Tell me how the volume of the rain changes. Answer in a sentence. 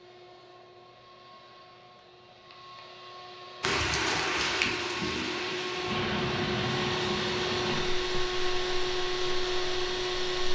The volume of the rain goes down.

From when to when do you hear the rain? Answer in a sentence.
The rain can be heard from 3.6 to 10.5 s.